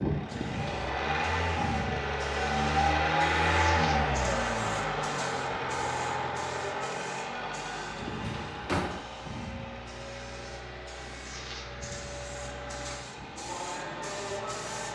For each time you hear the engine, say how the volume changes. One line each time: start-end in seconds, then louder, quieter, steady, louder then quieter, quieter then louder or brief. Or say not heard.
0.0-14.9 quieter.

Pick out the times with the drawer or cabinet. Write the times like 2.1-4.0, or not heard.
8.2-9.1.